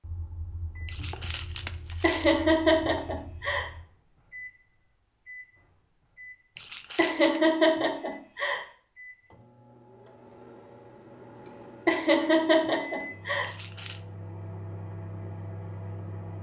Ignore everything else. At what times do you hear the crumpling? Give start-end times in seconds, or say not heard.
0.8-2.5, 6.5-7.4, 13.4-14.0.